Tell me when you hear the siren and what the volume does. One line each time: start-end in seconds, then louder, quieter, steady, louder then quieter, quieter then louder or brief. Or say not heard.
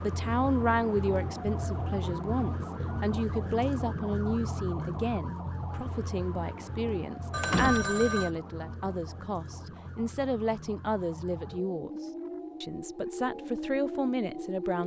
0.0-14.8 quieter then louder.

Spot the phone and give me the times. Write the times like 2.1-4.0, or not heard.
7.3-8.3.